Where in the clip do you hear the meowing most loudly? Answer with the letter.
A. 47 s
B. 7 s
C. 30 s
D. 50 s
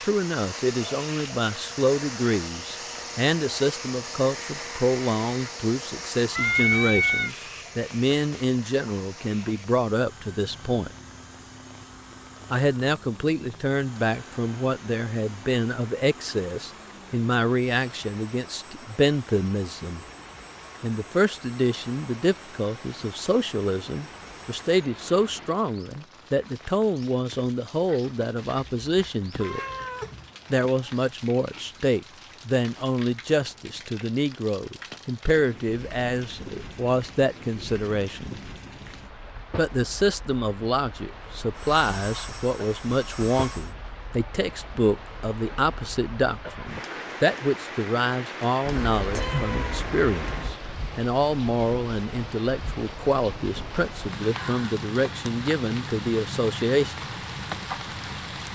B.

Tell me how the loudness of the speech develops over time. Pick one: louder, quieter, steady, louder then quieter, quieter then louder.
steady.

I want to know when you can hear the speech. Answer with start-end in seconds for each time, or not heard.
0.0-10.9, 12.5-20.0, 20.8-29.6, 30.5-38.4, 39.5-57.0.